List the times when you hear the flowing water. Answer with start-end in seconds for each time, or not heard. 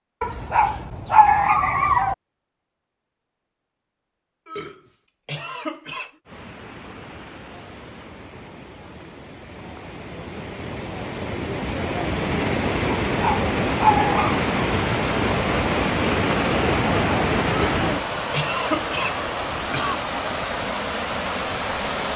6.2-22.1.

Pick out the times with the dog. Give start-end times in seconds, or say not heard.
0.2-2.1, 13.1-14.4.